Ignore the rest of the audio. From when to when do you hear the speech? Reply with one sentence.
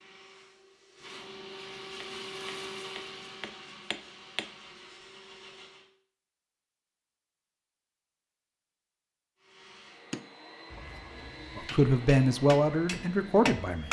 The speech can be heard from 11.6 to 13.8 s.